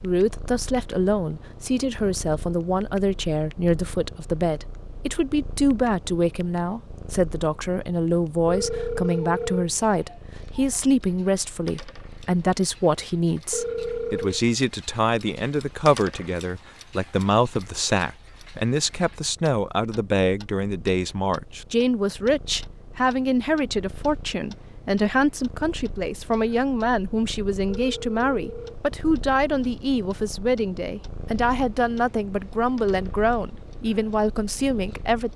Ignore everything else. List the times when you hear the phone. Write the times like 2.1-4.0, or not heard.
8.4-9.8, 13.5-14.4, 27.6-28.8.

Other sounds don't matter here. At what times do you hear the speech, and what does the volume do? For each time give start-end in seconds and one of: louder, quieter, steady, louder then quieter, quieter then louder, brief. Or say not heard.
0.0-35.3 steady.